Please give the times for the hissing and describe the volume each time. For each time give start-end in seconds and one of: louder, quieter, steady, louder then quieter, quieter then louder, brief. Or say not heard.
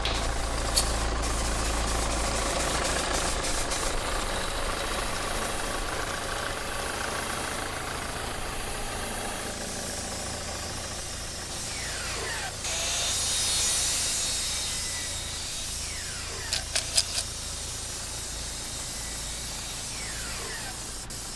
0.0-21.3 steady.